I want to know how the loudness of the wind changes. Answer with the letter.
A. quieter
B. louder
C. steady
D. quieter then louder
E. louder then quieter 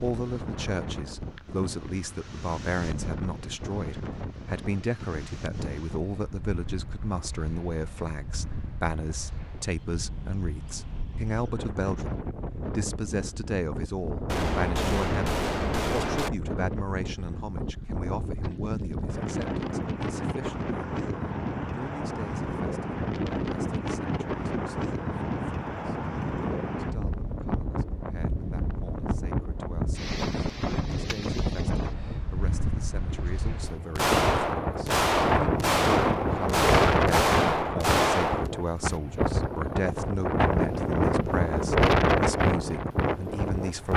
B.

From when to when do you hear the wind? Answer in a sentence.
The wind can be heard from 0.0 to 43.9 s.